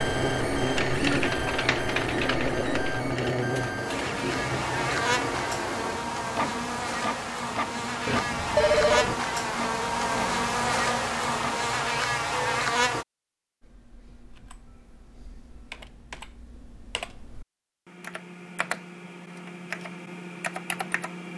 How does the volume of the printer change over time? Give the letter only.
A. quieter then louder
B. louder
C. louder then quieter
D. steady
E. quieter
E.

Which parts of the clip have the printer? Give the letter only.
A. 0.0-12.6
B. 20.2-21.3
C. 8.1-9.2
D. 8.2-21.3
A.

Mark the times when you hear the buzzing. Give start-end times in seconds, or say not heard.
0.0-13.1.